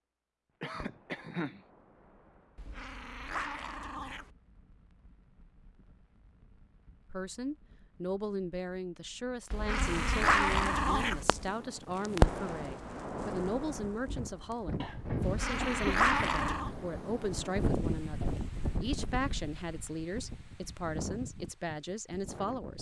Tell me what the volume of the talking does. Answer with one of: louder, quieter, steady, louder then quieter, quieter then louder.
steady.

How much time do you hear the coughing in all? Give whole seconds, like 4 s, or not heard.
2 s.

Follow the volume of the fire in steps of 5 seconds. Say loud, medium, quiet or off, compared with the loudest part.
quiet, quiet, loud, off, off.